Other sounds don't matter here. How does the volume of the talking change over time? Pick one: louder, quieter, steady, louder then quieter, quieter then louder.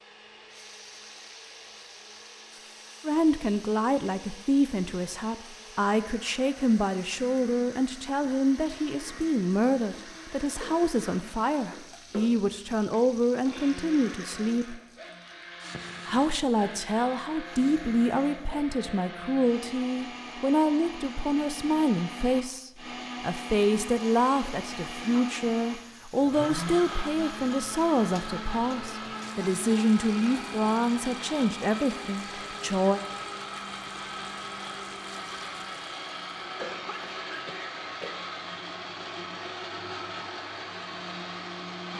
steady.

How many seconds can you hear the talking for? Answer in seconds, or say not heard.
29 s.